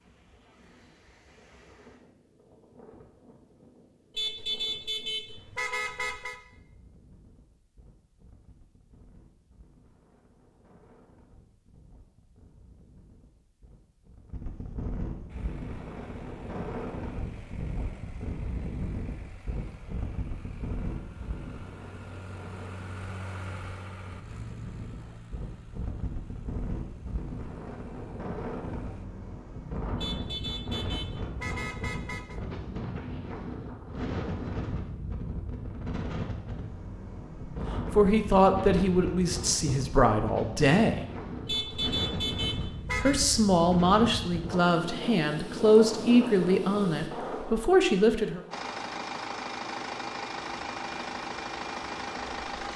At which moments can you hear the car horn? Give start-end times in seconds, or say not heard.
4.2-6.4, 30.0-32.4, 41.5-43.2.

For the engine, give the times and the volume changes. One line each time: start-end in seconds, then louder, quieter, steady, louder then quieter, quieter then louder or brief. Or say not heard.
15.2-29.1 louder then quieter
48.5-52.7 steady.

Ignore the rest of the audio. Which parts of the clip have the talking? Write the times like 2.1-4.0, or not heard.
37.9-41.0, 43.0-48.4.